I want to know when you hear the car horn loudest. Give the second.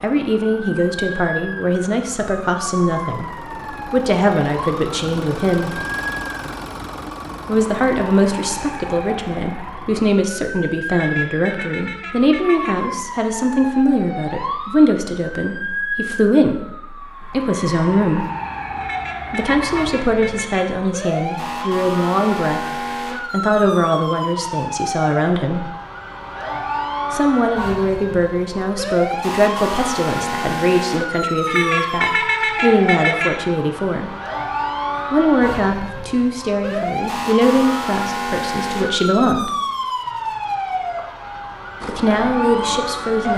32 s.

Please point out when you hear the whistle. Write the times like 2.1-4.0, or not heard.
not heard.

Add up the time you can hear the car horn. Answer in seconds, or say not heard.
6 s.